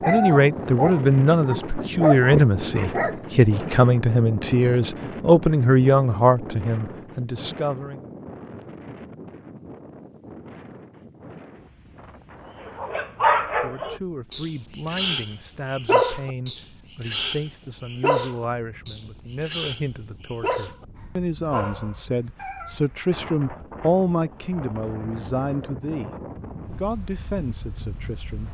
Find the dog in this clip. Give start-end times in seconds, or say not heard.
0.0-3.1, 12.6-20.9, 21.5-22.8.